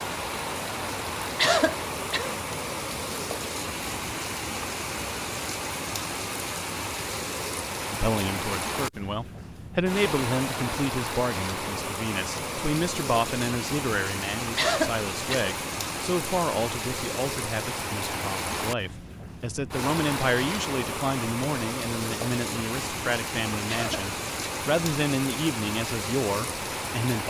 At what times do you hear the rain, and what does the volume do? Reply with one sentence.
The rain can be heard from 0.0 to 27.2 s, at a steady volume.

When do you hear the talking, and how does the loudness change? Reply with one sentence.
You can hear the talking from 7.9 to 27.2 s, at a steady volume.